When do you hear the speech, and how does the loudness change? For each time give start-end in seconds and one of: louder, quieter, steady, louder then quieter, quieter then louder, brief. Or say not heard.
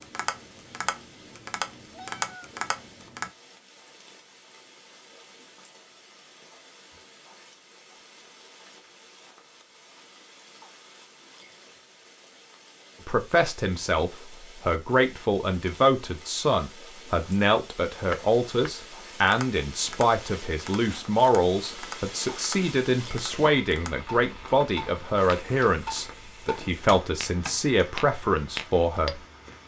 13.1-29.2 steady.